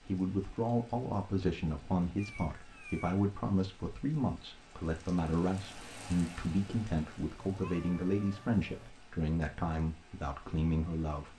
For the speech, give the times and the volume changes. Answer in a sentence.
The speech can be heard from 0.0 to 11.3 s, at a steady volume.